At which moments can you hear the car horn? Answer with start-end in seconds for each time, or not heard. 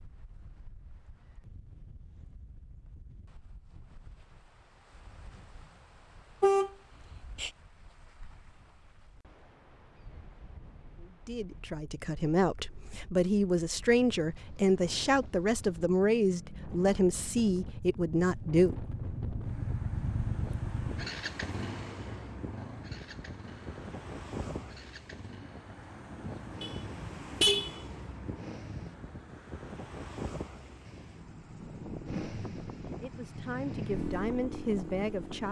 6.4-7.5, 26.6-28.1.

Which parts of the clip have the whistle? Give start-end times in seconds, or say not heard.
not heard.